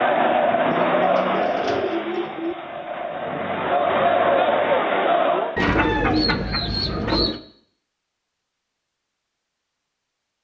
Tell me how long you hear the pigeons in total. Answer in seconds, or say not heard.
4 s.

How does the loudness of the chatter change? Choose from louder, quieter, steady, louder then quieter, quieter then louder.
quieter then louder.